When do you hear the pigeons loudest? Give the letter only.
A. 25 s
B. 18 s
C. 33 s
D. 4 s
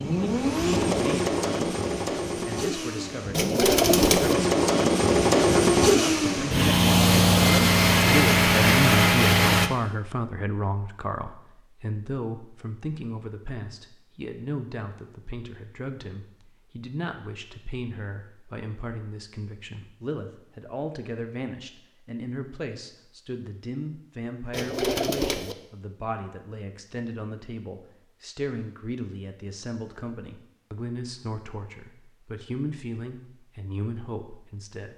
D.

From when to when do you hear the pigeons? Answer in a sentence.
You can hear the pigeons from 3.3 to 4.3 s and from 24.5 to 25.6 s.